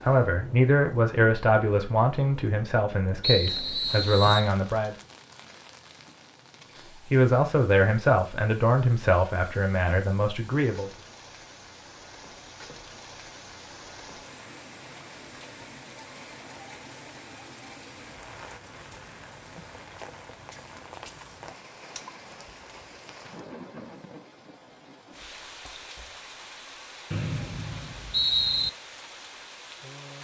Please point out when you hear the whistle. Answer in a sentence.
You can hear the whistle from 3.2 to 4.5 s and from 27.1 to 28.7 s.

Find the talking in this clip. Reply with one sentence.
You can hear the talking from 0.0 to 5.0 s and from 7.1 to 10.9 s.